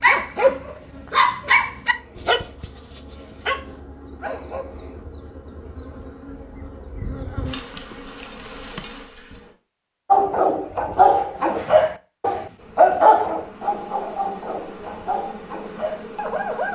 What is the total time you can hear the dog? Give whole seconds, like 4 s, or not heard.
11 s.